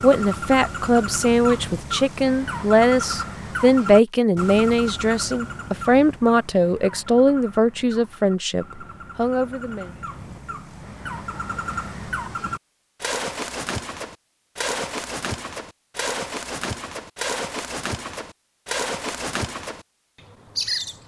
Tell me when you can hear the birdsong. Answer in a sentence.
You can hear the birdsong from 0.0 to 21.0 s.